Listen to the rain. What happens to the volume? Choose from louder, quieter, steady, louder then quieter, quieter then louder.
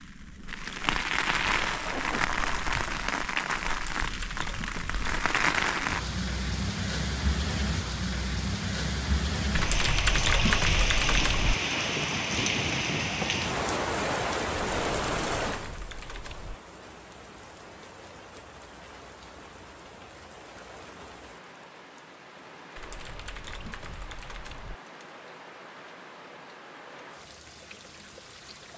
quieter.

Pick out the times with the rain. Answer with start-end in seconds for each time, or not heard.
0.0-28.7.